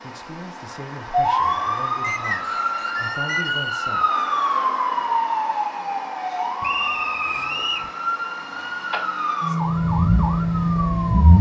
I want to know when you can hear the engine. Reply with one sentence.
You can hear the engine from 9.7 to 11.3 s.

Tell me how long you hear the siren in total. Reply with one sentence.
The siren can be heard for 11 seconds in total.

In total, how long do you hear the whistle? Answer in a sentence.
You can hear the whistle for 3 seconds altogether.